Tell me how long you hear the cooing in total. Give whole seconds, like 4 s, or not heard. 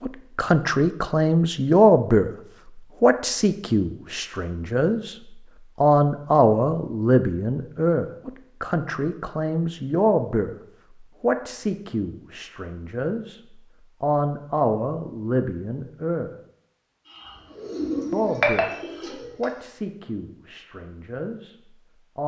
2 s.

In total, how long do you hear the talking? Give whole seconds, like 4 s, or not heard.
18 s.